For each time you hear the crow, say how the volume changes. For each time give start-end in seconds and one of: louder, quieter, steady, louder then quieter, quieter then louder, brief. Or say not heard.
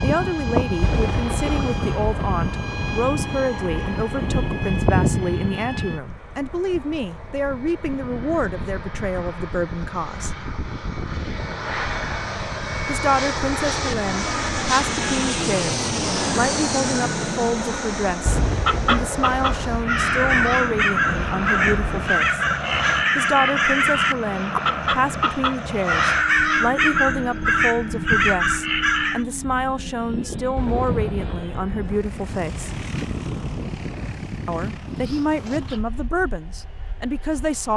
18.6-29.2 steady.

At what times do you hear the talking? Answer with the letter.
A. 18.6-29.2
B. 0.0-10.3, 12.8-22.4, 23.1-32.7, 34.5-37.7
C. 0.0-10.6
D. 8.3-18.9
B.